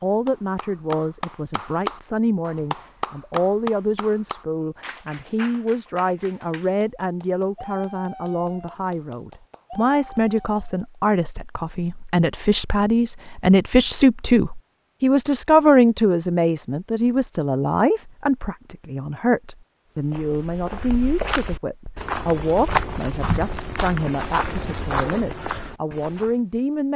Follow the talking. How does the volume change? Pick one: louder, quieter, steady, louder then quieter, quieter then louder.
louder then quieter.